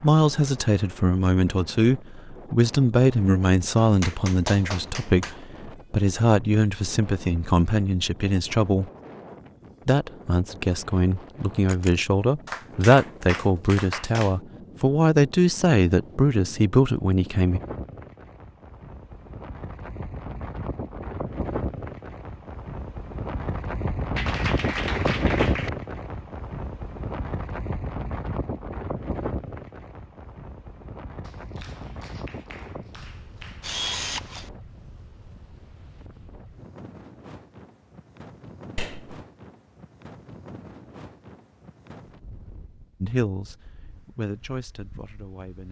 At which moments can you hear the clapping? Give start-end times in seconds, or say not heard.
3.8-5.3, 12.4-14.3, 24.1-25.7, 31.2-33.7, 38.8-39.2.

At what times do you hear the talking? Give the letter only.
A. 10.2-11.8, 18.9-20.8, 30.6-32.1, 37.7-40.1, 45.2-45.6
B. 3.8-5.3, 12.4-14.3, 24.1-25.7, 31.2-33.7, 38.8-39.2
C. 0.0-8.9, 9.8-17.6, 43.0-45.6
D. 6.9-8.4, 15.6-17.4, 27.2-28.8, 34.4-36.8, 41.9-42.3
C.